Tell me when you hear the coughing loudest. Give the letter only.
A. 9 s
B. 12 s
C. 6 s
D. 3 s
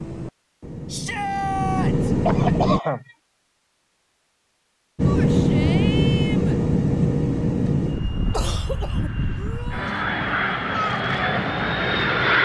D.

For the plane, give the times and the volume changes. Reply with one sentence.
The plane can be heard briefly from 0.0 to 2.8 s; and from 5.0 to 12.4 s, getting quieter then louder.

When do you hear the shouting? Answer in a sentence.
The shouting can be heard from 0.8 to 2.1 s, from 5.0 to 6.6 s and from 9.3 to 10.1 s.